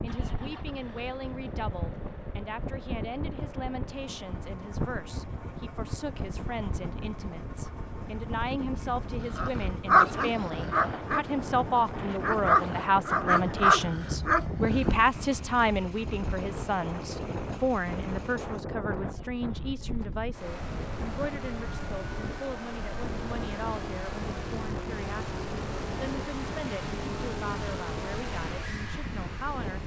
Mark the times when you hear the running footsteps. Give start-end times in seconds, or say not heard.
not heard.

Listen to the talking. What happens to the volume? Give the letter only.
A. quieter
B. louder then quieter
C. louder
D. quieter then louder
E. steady
B.